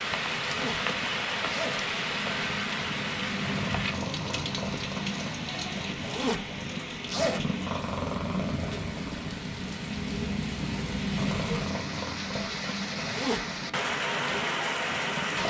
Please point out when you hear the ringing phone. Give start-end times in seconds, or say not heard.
not heard.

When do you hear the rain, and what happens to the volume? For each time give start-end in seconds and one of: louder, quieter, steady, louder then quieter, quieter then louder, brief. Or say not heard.
0.0-15.4 quieter then louder.